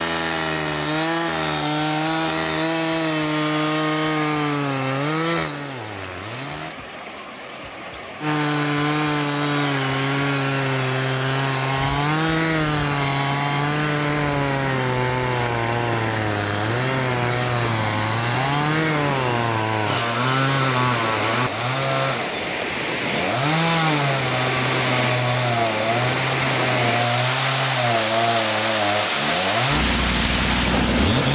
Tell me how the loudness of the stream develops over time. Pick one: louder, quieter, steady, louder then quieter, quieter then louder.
louder.